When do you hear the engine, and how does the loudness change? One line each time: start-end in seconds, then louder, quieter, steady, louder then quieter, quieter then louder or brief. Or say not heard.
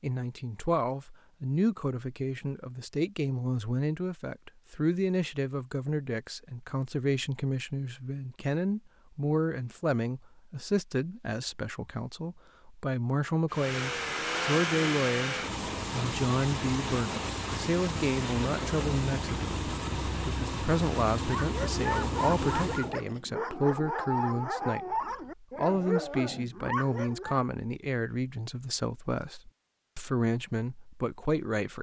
13.5-22.9 steady.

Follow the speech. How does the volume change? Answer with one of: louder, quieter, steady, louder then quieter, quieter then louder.
steady.